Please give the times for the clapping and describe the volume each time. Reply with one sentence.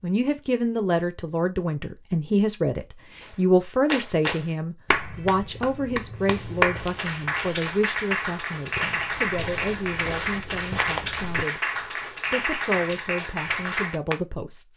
You can hear the clapping from 3.2 to 14.2 s, at a steady volume.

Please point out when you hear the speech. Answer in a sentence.
You can hear the speech from 0.0 to 14.7 s.